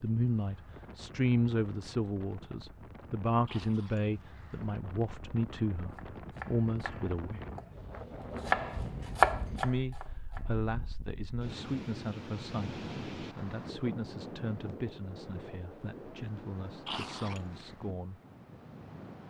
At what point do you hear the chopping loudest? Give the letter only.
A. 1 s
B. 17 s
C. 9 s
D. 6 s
C.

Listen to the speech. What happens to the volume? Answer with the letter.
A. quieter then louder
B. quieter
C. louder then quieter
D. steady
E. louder
B.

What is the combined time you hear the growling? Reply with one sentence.
The growling can be heard for 2 seconds in total.